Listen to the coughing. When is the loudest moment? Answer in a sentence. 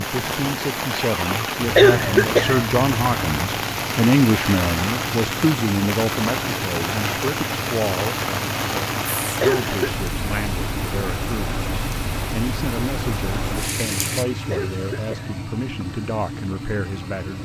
The loudest moment of the coughing is at 2 seconds.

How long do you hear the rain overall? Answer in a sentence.
You can hear the rain for 14 seconds altogether.